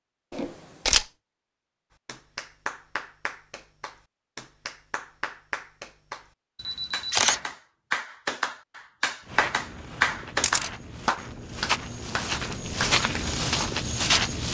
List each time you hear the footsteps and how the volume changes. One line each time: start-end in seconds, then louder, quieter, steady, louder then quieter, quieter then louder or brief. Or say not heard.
9.2-14.4 louder.